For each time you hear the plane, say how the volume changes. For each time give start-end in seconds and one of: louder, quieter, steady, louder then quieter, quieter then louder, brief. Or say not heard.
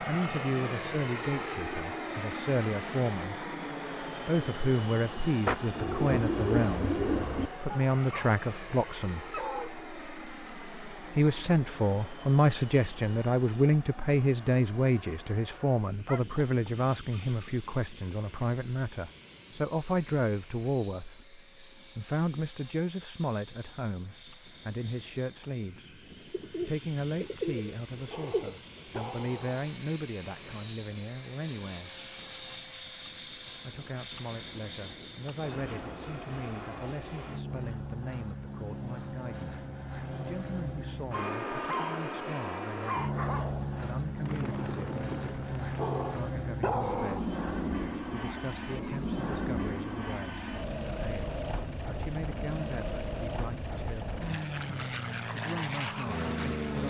0.0-56.8 quieter then louder.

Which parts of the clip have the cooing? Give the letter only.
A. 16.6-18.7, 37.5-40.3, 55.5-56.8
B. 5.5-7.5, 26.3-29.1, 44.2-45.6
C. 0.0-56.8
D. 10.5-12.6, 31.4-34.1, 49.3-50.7
B.